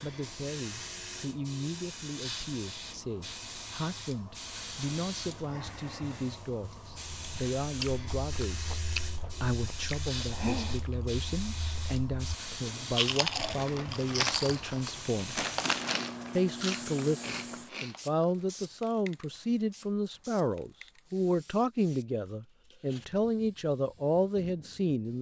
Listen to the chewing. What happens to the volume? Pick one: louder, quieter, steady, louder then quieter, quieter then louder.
louder then quieter.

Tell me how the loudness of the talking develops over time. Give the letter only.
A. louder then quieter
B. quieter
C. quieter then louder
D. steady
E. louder
E.